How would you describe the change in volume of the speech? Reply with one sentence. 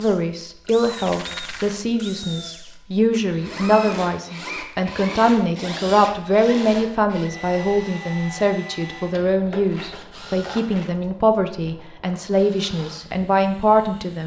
The volume of the speech stays about the same.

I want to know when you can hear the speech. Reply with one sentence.
The speech can be heard from 0.0 to 14.2 s.